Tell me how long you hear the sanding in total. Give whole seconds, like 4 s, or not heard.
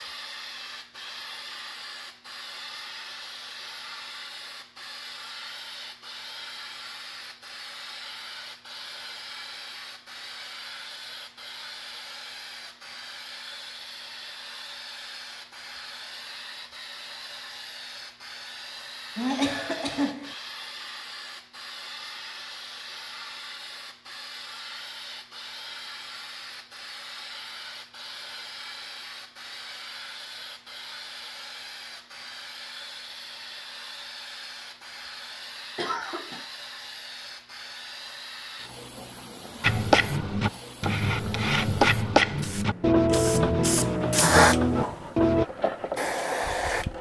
6 s.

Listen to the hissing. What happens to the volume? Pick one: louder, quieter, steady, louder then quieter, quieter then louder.
louder.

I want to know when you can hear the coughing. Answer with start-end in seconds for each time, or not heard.
19.1-20.4, 35.8-36.5.